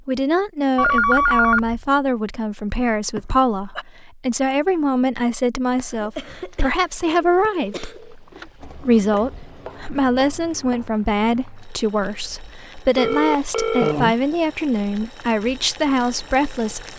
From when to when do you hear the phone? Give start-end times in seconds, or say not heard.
0.8-1.9, 7.0-8.5, 12.9-13.9.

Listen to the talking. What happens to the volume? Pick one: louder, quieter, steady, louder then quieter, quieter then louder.
steady.